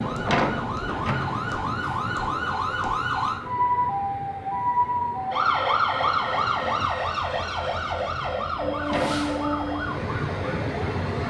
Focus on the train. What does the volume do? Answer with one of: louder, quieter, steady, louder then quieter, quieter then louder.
quieter then louder.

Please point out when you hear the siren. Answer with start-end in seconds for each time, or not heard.
0.0-11.2.